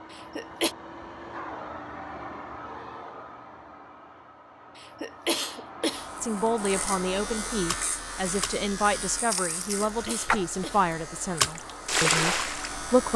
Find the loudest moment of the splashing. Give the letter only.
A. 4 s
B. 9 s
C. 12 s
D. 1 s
C.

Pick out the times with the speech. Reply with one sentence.
The speech can be heard from 6.2 to 13.1 s.